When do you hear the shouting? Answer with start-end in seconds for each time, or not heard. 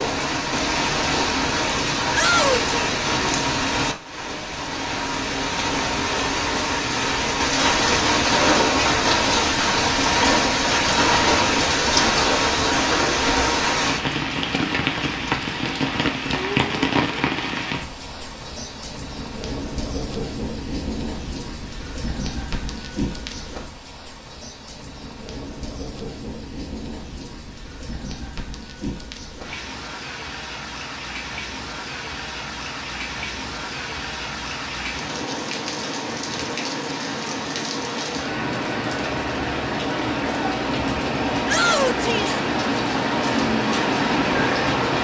2.1-2.6, 41.5-42.4.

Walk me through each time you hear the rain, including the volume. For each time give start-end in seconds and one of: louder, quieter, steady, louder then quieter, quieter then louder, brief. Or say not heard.
0.0-44.9 quieter then louder.